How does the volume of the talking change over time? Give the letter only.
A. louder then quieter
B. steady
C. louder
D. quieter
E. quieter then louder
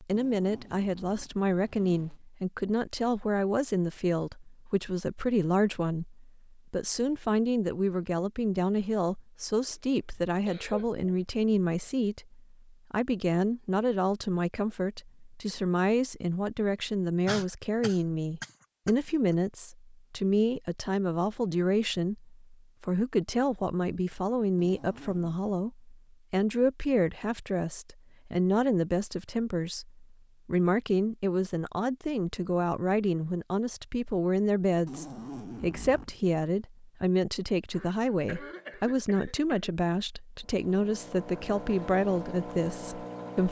B.